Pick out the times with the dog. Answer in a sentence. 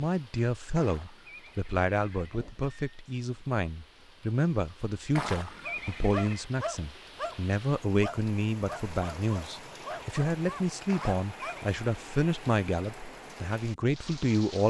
You can hear the dog from 5.6 to 11.7 s.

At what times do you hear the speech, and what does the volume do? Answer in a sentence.
The speech can be heard from 0.0 to 14.6 s, at a steady volume.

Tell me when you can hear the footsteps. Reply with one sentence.
You can't hear the footsteps here.